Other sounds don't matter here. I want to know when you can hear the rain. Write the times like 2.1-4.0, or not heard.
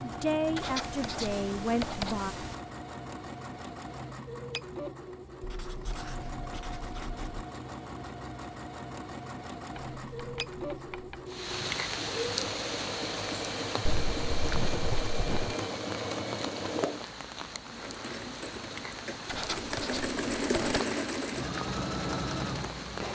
11.2-23.0.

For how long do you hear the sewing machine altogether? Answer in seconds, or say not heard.
23 s.